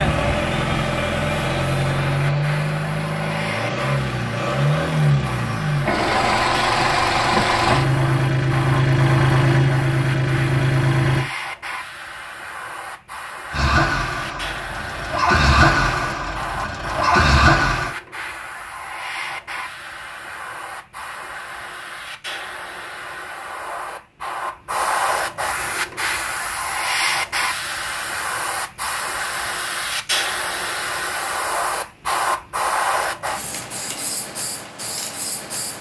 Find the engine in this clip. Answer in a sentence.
The engine can be heard from 0.0 to 11.3 s and from 13.5 to 17.9 s.